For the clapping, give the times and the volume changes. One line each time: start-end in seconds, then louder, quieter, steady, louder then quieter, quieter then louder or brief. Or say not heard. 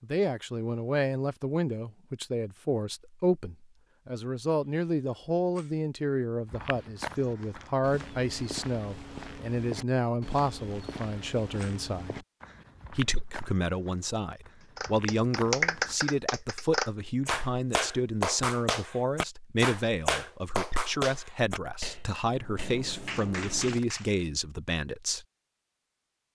14.8-24.2 quieter.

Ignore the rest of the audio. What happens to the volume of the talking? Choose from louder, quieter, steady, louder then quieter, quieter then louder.
steady.